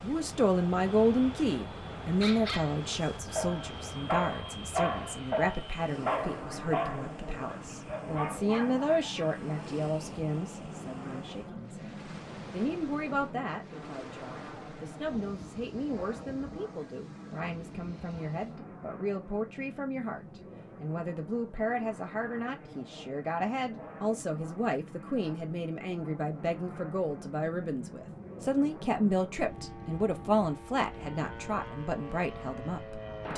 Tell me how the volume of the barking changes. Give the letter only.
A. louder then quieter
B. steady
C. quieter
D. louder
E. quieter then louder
A.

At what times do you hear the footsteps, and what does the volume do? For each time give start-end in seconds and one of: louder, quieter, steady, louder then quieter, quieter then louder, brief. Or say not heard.
not heard.